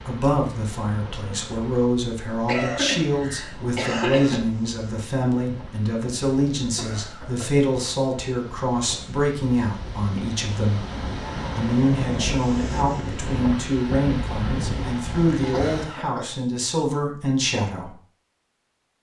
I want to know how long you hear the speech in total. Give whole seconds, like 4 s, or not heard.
17 s.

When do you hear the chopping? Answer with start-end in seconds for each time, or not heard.
not heard.